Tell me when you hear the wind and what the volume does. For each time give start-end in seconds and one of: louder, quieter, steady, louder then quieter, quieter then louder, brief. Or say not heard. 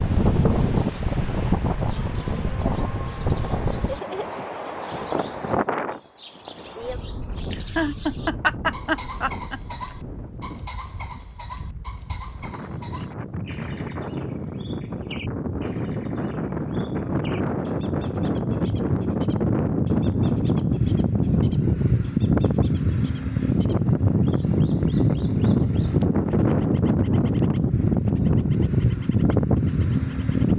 0.0-30.5 quieter then louder.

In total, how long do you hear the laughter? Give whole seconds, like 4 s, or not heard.
2 s.